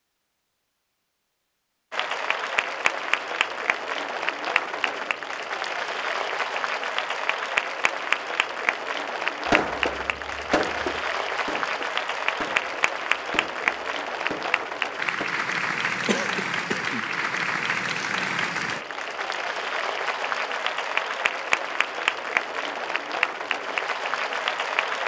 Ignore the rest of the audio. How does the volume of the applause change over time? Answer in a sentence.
The volume of the applause stays about the same.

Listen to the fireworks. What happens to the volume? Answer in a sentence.
The loudness of the fireworks goes down.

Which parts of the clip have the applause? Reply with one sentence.
You can hear the applause from 1.9 to 25.0 s.